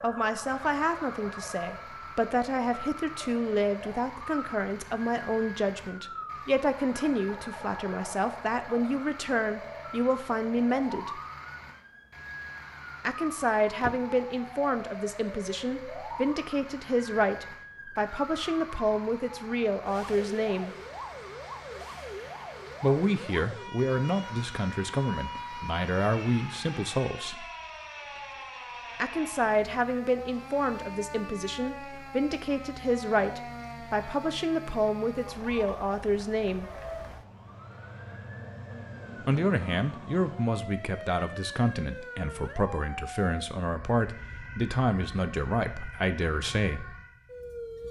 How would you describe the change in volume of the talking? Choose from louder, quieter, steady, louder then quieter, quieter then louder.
steady.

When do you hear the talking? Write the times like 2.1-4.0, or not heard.
0.0-11.2, 13.0-20.7, 22.8-27.4, 28.9-36.6, 39.2-47.0.